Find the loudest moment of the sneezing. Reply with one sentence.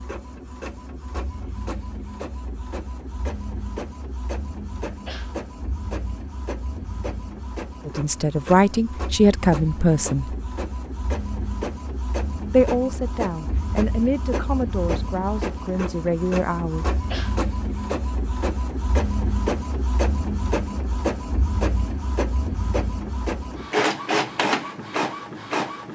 The volume of the sneezing peaks at 17 seconds.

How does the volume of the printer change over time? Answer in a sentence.
The loudness of the printer goes up.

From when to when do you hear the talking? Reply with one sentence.
You can hear the talking from 7.8 to 10.3 s and from 12.5 to 16.9 s.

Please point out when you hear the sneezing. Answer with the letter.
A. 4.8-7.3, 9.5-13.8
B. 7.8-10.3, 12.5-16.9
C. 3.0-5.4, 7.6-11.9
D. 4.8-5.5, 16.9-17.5
D.